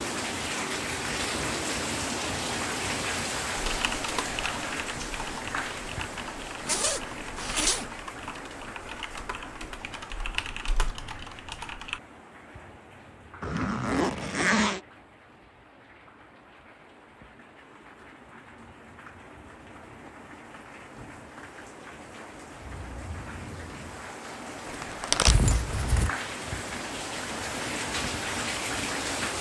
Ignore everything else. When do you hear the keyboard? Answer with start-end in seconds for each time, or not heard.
3.5-12.0.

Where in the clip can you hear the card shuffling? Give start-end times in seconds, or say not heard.
24.6-25.5.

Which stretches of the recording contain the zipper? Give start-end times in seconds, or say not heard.
6.7-7.8, 13.4-14.8, 25.2-26.1.